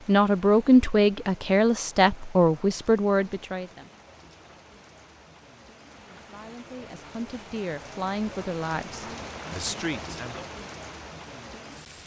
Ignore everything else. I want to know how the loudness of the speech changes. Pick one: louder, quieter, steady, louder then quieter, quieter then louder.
quieter.